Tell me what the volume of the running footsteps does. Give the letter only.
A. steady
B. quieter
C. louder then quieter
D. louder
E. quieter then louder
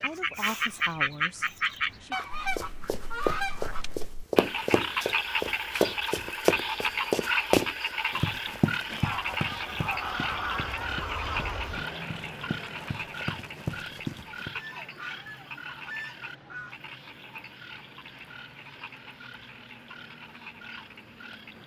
E.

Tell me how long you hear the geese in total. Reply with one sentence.
You can hear the geese for 7 seconds altogether.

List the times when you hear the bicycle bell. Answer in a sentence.
The bicycle bell can't be heard in this clip.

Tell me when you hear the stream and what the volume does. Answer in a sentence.
You can't hear the stream here.